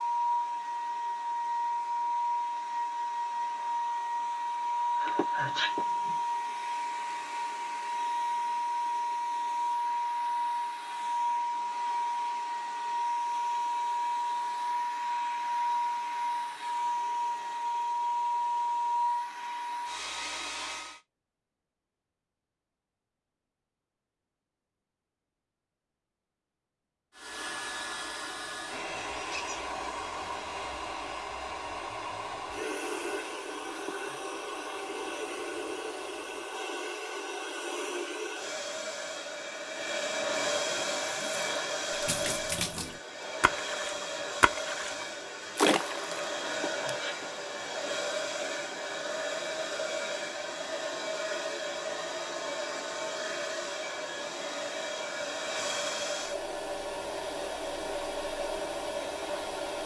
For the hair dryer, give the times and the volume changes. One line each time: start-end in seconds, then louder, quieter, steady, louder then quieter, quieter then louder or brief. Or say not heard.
0.0-21.0 steady
27.1-59.8 steady.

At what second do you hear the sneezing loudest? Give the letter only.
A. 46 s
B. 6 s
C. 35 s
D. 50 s
B.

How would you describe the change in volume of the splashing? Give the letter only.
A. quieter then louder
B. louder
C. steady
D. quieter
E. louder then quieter
B.